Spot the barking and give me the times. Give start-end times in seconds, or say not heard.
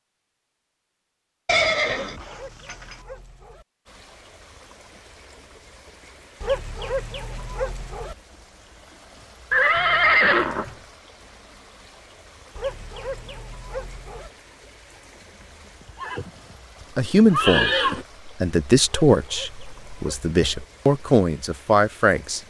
2.0-3.6, 6.4-8.2, 12.6-14.3, 18.9-20.6.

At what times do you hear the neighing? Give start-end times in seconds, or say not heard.
1.4-3.0, 9.5-10.8, 15.8-18.1.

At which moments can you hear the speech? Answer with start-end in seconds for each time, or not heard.
16.9-22.4.